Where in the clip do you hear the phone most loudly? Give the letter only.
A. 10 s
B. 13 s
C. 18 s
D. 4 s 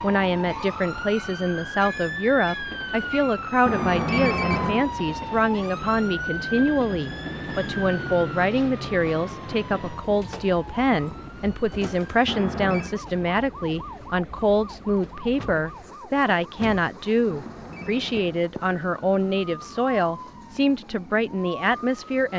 D.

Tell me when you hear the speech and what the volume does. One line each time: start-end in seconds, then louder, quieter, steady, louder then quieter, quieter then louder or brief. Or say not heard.
0.0-22.3 steady.